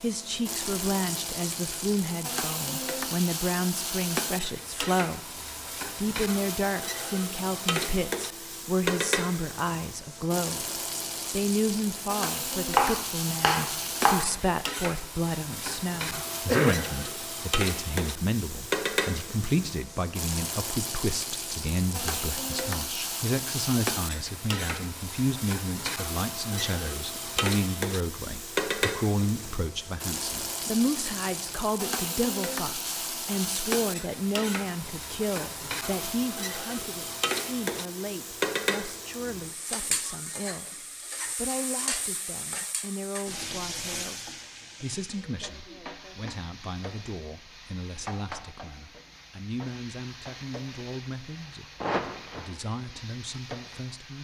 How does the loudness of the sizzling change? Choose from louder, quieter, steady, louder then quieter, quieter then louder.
quieter.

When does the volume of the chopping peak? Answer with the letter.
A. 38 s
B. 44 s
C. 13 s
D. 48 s
C.